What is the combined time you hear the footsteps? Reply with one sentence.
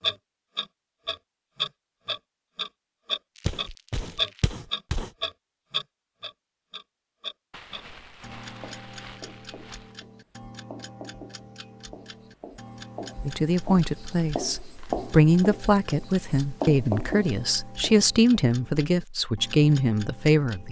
You can hear the footsteps for 2 seconds altogether.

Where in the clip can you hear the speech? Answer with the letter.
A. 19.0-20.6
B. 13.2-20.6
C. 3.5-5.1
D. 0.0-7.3
B.